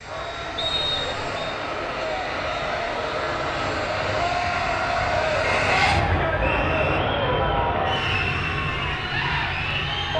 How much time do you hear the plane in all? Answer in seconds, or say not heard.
10 s.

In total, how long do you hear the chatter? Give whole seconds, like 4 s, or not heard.
10 s.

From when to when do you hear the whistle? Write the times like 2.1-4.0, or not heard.
0.6-1.6, 5.8-7.0.